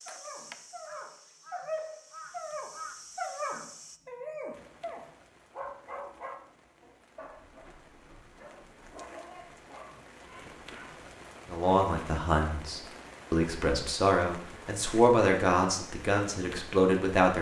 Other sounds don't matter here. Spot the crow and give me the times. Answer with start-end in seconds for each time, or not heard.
0.0-4.0.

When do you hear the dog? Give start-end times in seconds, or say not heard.
0.1-11.1.